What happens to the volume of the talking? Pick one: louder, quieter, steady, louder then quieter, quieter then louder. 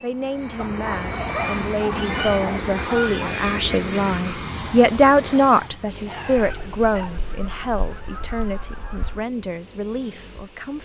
louder then quieter.